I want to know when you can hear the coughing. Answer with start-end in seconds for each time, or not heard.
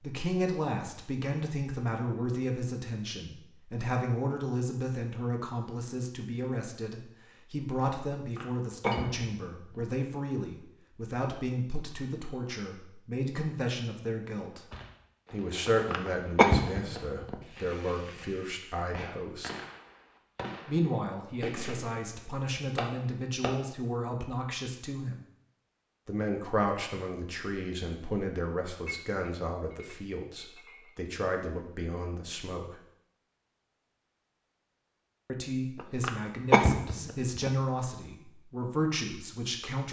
8.3-9.8, 15.7-17.4, 35.8-37.5.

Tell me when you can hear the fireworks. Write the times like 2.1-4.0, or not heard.
14.7-23.6.